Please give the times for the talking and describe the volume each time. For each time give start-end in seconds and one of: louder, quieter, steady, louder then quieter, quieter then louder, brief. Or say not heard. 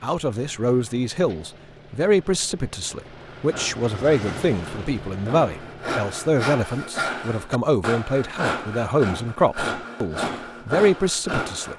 0.0-11.7 steady.